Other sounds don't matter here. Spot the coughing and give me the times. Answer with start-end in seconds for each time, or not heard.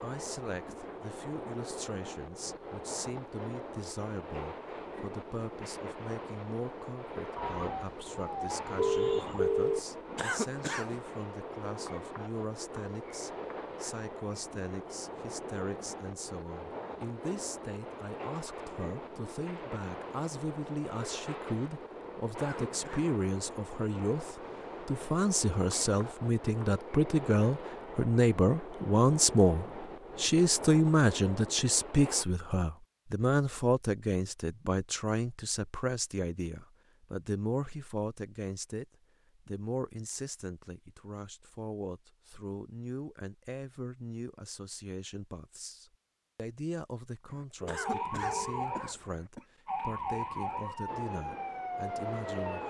10.2-10.9, 22.4-23.1, 47.6-49.5.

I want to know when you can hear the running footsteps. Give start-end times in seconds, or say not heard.
not heard.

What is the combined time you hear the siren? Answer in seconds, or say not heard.
7 s.